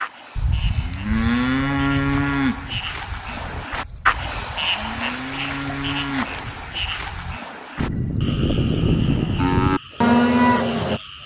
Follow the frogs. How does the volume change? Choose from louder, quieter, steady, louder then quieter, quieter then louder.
louder then quieter.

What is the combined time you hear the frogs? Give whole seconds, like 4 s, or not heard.
11 s.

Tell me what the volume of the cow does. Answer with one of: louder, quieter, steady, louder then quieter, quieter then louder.
quieter then louder.